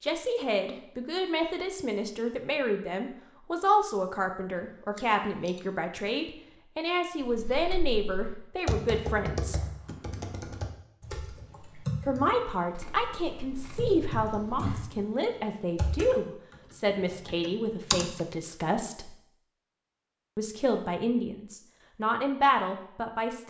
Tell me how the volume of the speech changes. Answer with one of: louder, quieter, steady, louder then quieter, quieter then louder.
steady.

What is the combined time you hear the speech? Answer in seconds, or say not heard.
20 s.